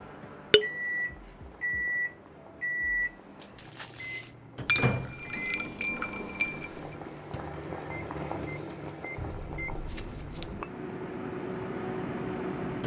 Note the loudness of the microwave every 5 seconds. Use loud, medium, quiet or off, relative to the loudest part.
loud, medium, loud.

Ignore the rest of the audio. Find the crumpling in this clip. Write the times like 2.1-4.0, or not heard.
3.4-4.3, 9.8-10.5.